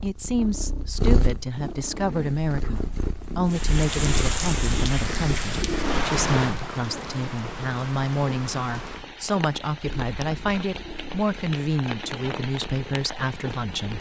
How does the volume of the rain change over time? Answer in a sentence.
The volume of the rain goes down.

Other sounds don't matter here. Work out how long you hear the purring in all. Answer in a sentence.
You can hear the purring for 14 seconds altogether.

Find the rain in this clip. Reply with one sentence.
The rain can be heard from 3.5 to 13.9 s.